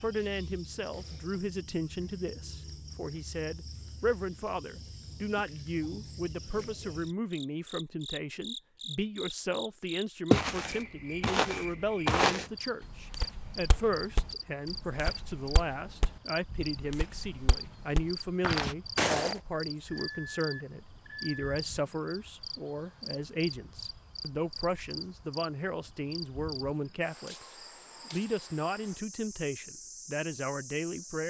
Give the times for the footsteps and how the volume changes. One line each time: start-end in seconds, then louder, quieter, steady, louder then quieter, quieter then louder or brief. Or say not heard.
10.3-19.4 quieter then louder.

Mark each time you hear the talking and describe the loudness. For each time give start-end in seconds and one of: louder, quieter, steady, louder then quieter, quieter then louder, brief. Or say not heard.
0.0-31.2 steady.